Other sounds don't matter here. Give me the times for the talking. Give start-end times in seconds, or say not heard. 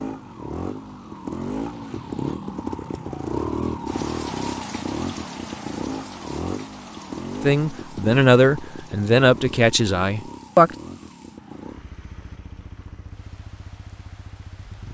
7.4-10.7.